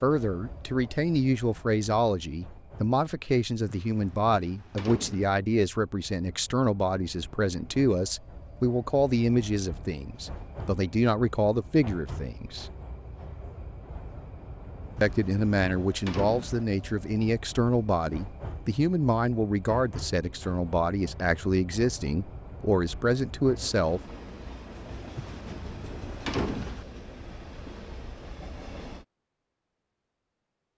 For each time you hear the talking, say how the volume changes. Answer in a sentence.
The talking can be heard from 0.0 to 12.7 s, at a steady volume; and from 15.0 to 24.0 s, at a steady volume.